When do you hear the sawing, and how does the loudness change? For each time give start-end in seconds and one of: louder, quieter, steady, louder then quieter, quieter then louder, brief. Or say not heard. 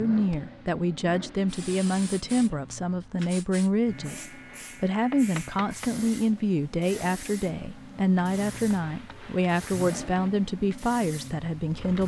not heard.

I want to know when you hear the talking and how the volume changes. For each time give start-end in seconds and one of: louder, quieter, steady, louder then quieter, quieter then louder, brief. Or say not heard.
0.0-12.0 steady.